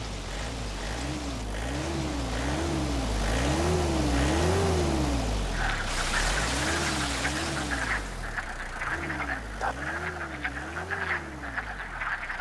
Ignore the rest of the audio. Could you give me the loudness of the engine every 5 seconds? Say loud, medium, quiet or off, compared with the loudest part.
loud, medium, quiet.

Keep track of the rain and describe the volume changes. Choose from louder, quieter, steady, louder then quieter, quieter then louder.
louder.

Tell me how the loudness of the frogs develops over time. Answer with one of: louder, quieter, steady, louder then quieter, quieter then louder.
steady.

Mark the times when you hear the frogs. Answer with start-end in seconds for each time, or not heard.
5.5-12.3.